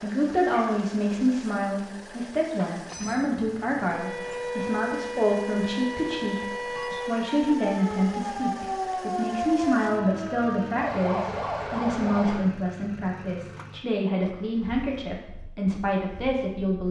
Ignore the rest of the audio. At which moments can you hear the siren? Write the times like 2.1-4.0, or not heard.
2.9-12.4.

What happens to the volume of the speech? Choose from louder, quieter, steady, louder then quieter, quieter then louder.
steady.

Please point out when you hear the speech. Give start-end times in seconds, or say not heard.
0.0-6.5, 7.0-16.8.